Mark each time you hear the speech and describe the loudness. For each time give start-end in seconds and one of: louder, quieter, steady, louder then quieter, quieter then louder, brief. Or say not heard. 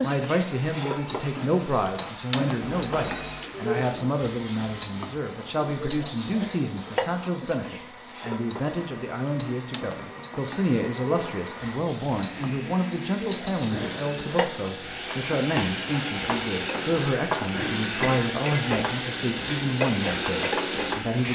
0.0-21.3 steady.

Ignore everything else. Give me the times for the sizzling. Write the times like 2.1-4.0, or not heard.
0.0-21.3.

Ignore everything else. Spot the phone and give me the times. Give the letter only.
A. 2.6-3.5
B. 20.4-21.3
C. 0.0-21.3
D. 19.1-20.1
A.